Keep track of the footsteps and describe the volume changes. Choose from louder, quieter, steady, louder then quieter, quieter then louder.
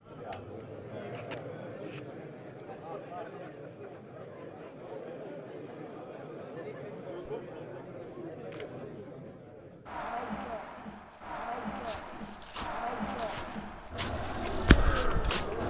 louder.